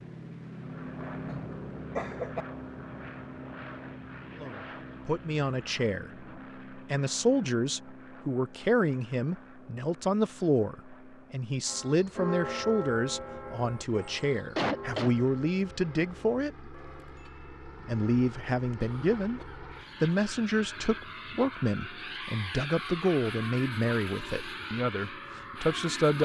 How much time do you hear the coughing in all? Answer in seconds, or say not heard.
3 s.